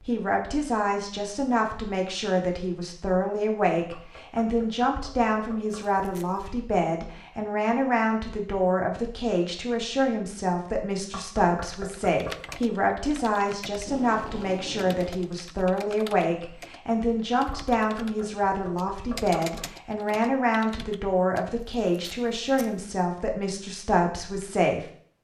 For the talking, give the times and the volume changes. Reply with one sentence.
You can hear the talking from 0.0 to 24.9 s, at a steady volume.